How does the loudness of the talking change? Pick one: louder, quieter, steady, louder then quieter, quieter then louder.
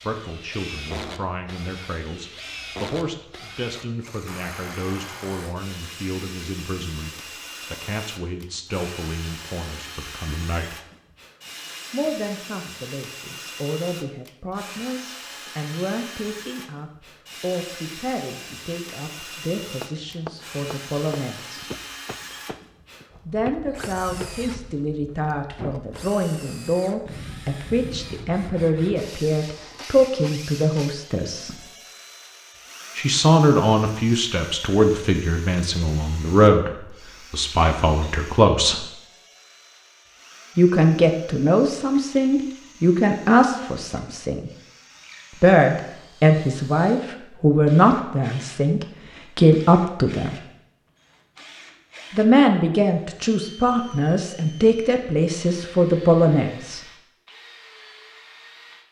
louder.